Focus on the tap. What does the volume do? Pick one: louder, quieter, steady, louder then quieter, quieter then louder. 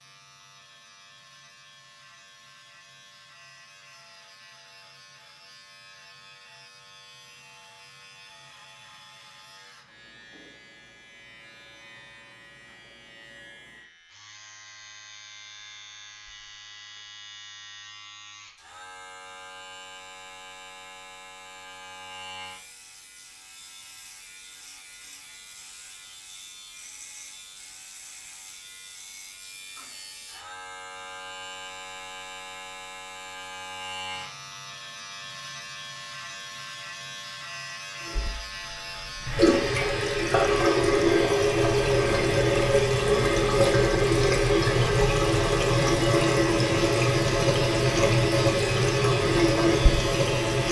steady.